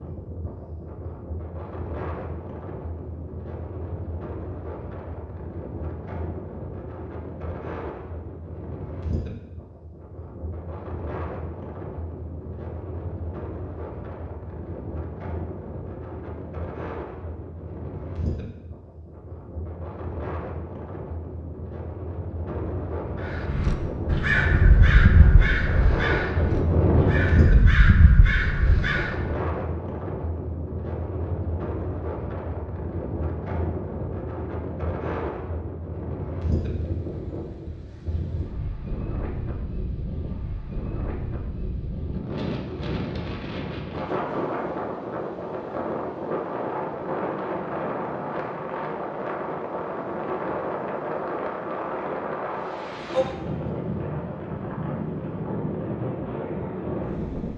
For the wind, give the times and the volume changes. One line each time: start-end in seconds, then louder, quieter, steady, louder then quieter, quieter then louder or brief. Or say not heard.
0.0-57.5 louder.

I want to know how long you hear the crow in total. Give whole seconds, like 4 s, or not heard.
6 s.